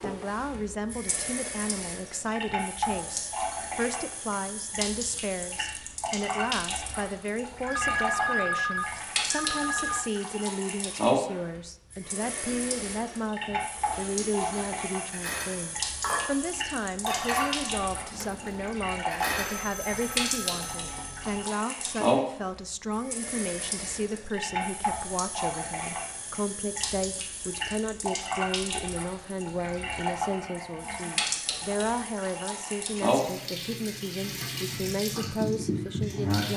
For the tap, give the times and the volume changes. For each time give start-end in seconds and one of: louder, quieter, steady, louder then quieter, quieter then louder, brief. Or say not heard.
0.0-36.5 steady.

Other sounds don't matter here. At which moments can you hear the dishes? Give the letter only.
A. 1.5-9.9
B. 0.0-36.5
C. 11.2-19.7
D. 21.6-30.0
C.